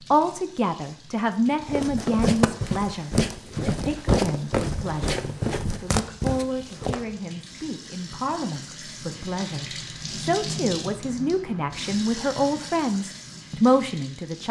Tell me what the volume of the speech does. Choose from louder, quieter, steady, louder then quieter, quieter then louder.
quieter then louder.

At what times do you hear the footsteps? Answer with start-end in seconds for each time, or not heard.
1.6-7.2.